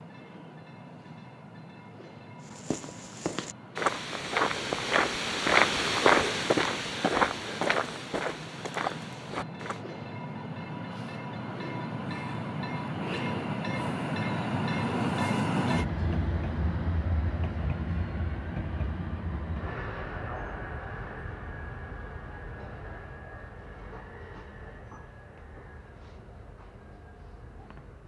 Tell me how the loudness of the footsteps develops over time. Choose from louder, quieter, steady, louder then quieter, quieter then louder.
louder then quieter.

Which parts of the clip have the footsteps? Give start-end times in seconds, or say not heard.
2.4-9.8.